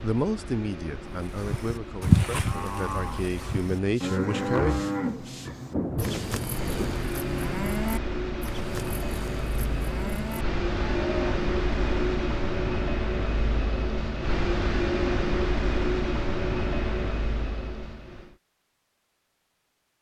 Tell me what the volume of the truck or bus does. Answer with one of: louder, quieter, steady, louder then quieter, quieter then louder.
louder.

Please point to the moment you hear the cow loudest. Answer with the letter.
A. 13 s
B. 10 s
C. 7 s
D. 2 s
D.